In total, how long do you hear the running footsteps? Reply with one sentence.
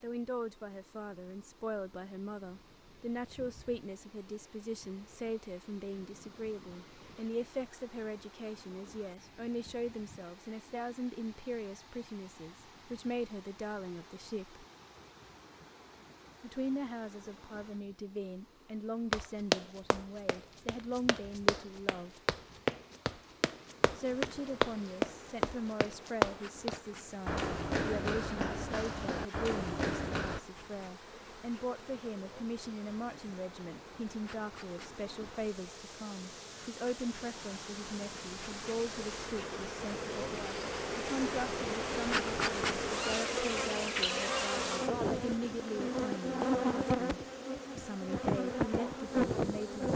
You can hear the running footsteps for 11 seconds altogether.